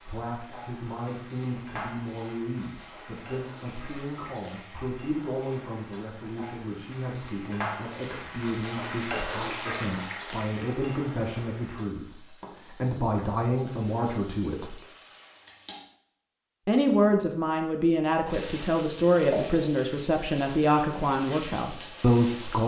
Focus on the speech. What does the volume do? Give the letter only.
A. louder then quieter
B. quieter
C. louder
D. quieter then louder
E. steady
C.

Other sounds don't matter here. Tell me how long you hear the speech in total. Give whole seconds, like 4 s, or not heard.
21 s.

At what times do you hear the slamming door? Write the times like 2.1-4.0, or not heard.
not heard.